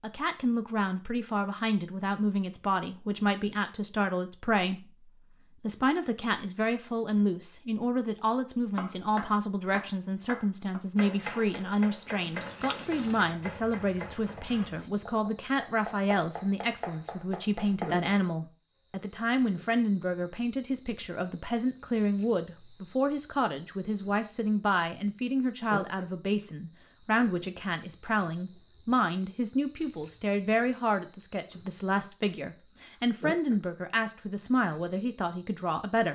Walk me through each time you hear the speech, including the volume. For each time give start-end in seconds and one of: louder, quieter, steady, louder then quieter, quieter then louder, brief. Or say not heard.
0.0-36.1 steady.